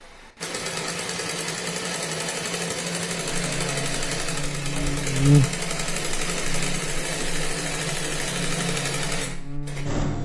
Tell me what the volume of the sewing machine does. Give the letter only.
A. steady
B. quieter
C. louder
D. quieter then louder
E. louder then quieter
A.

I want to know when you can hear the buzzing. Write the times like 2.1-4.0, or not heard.
3.2-10.1.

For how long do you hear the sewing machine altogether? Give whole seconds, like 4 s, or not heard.
10 s.